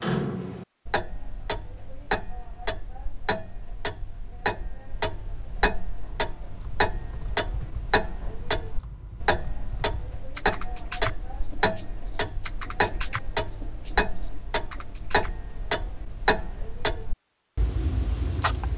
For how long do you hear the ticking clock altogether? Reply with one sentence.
You can hear the ticking clock for 19 seconds altogether.